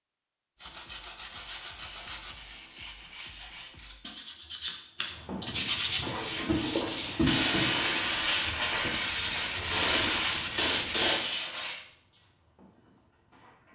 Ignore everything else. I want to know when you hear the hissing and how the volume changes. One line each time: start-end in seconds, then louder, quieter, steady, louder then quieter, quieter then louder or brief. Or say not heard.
5.2-13.7 louder then quieter.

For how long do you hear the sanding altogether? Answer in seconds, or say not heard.
11 s.